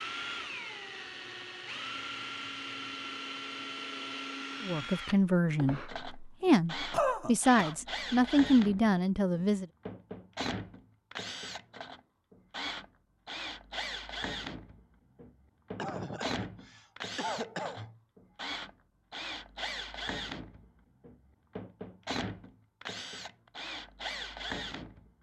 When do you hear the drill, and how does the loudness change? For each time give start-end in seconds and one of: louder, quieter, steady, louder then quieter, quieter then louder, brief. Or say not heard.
0.0-25.1 steady.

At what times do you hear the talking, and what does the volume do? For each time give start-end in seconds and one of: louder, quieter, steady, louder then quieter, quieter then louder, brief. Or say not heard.
4.6-9.7 steady.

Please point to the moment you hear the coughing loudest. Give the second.
7 s.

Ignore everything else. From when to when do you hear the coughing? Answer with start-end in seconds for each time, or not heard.
6.9-7.8, 15.8-18.0.